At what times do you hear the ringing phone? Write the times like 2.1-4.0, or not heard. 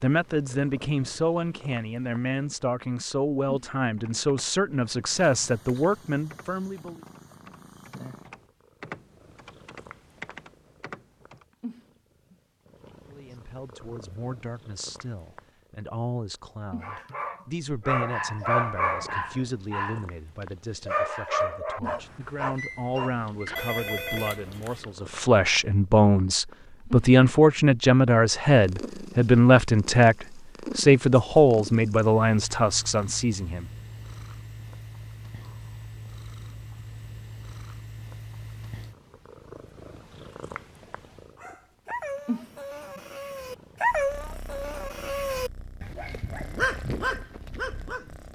23.6-24.9.